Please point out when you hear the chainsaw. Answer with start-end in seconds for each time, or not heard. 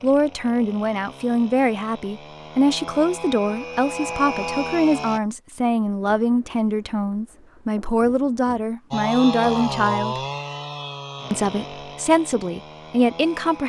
0.0-5.2, 8.9-13.6.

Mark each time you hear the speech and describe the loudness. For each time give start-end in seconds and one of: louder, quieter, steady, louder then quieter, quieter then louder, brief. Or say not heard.
0.0-10.2 steady
11.3-13.6 brief.